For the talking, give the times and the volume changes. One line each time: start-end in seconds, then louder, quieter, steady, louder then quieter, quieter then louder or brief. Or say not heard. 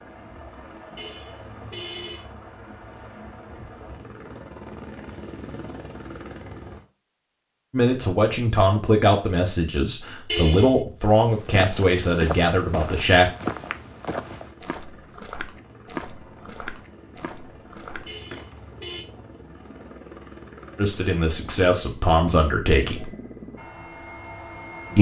7.7-13.3 steady
20.8-23.1 brief.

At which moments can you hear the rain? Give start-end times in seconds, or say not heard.
not heard.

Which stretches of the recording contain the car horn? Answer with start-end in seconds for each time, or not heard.
0.9-2.2, 10.2-11.0, 18.1-19.1.